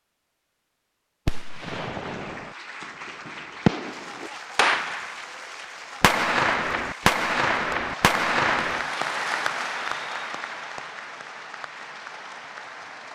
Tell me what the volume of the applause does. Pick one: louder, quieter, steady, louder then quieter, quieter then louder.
louder then quieter.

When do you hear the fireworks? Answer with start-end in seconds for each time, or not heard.
1.2-5.2, 6.0-8.8.